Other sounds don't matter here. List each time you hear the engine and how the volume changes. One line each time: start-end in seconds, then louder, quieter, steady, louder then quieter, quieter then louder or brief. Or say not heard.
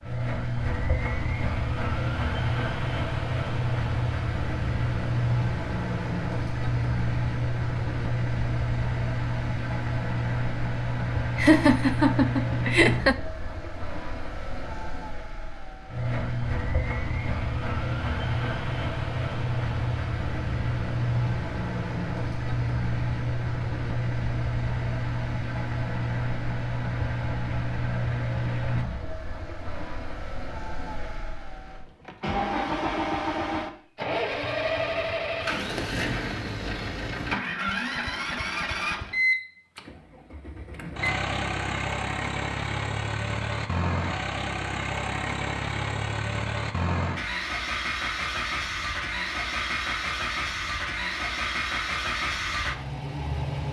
0.0-53.6 steady.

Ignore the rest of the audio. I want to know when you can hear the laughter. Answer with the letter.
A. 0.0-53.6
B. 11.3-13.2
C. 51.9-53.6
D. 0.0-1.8
B.